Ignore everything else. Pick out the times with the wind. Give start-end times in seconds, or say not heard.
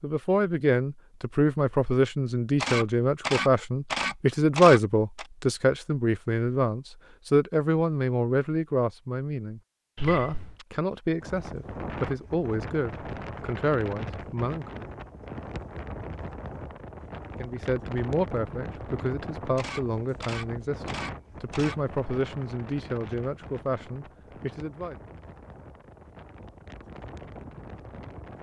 11.2-28.3.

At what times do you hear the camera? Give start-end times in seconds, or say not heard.
2.6-5.2, 9.9-10.7, 19.6-21.8.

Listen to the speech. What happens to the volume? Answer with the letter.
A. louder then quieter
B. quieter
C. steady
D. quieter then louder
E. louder
B.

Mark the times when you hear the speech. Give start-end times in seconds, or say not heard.
0.0-14.9, 17.4-24.9.